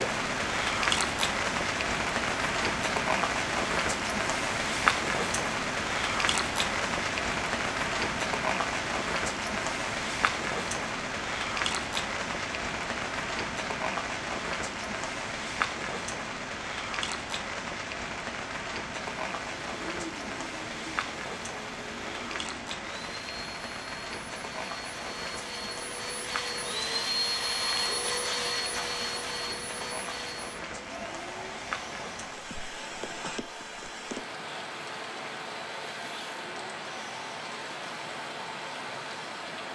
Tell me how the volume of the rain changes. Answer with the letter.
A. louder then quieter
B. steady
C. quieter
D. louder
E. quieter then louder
C.